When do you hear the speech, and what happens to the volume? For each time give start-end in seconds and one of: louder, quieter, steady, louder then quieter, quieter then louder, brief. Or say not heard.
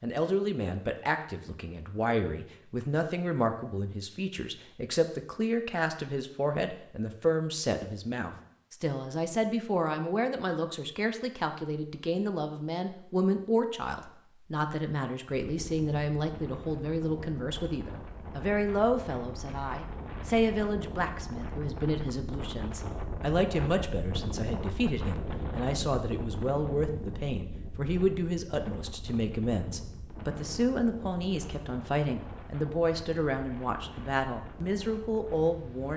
0.0-35.9 steady.